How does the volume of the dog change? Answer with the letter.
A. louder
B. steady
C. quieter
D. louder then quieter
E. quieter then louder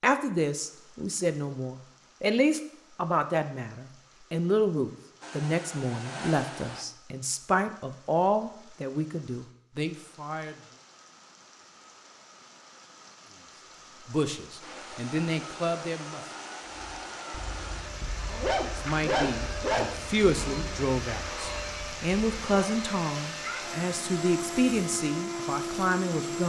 D.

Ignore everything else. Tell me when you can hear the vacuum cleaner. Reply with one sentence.
You can hear the vacuum cleaner from 5.2 to 6.8 s and from 14.6 to 26.4 s.